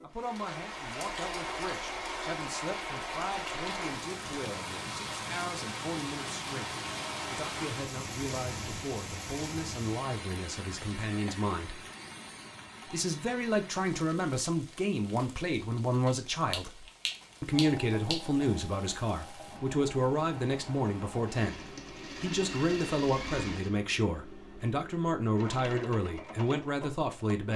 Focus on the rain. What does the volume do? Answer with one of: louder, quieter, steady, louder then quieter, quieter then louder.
quieter.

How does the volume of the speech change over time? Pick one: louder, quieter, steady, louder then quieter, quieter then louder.
louder.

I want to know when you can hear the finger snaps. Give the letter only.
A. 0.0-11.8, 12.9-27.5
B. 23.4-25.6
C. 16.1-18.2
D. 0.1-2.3
C.